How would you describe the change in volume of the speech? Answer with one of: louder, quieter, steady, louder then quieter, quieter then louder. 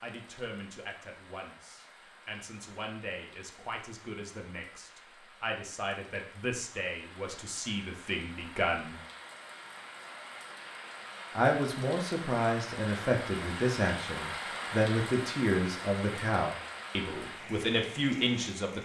louder.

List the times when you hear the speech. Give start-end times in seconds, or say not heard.
0.0-9.0, 11.3-18.8.